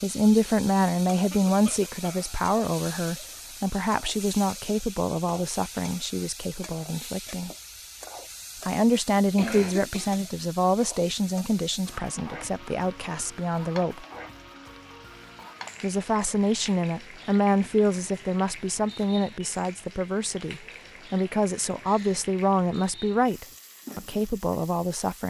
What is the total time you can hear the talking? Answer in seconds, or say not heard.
22 s.